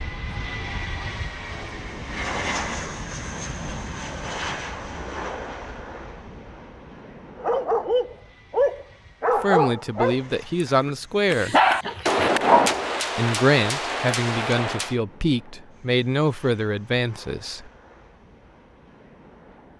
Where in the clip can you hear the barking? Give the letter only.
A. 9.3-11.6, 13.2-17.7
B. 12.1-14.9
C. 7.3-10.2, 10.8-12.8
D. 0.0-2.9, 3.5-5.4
C.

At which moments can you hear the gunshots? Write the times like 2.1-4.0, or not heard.
12.1-14.9.